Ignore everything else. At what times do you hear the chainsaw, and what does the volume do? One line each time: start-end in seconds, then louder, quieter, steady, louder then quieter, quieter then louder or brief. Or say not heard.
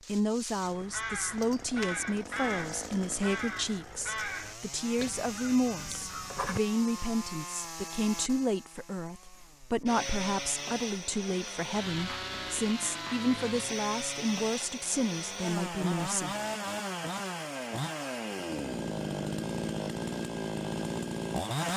0.0-21.7 louder.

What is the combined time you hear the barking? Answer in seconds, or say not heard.
not heard.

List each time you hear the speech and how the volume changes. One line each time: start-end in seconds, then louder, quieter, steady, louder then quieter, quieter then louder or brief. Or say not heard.
0.1-16.4 steady.